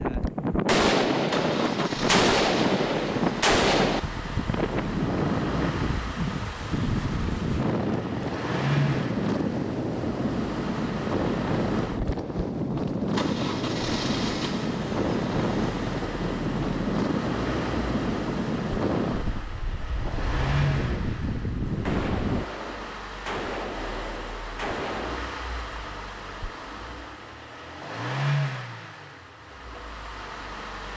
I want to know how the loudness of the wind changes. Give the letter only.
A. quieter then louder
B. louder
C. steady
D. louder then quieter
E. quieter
C.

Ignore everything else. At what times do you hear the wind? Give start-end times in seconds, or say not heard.
0.0-22.5.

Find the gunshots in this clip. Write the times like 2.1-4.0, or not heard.
0.7-4.0, 21.9-25.2.